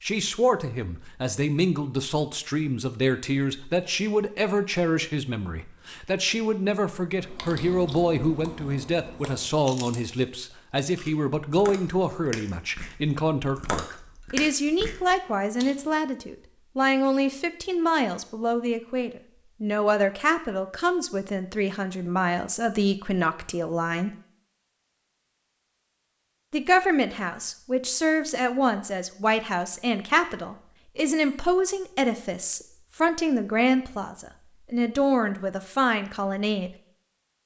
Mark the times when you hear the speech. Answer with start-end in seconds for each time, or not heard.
0.0-24.1, 26.5-36.8.